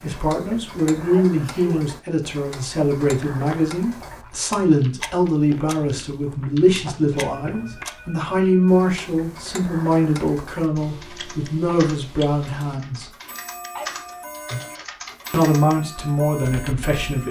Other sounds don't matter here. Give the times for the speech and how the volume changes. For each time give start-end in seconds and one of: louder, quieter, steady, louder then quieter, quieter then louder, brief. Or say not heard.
0.0-13.1 steady
15.3-17.2 brief.